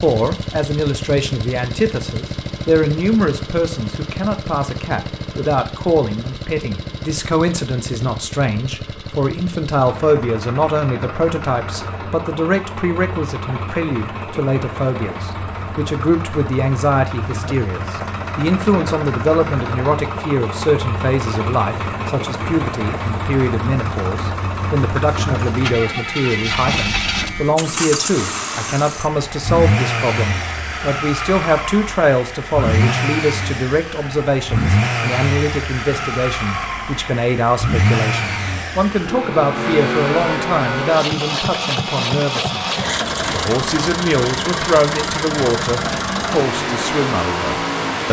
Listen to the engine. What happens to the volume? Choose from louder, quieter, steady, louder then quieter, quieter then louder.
louder.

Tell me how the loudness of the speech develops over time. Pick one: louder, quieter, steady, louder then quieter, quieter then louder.
steady.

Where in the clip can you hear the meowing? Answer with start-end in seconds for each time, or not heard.
not heard.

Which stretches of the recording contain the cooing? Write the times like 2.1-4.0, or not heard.
not heard.